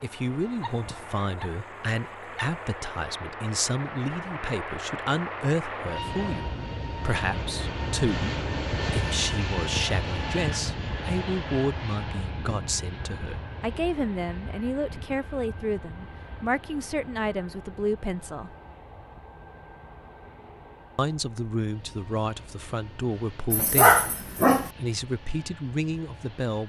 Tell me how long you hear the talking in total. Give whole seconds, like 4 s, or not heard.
24 s.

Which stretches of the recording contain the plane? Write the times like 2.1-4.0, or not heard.
0.0-26.6.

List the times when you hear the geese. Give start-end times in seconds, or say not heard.
not heard.